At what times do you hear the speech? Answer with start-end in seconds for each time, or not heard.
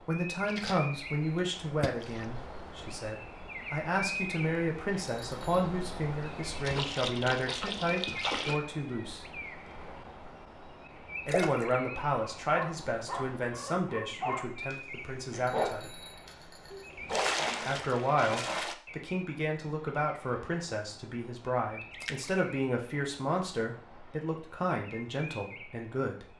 0.1-9.2, 11.2-16.0, 17.6-26.3.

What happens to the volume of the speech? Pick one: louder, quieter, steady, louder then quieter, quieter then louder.
steady.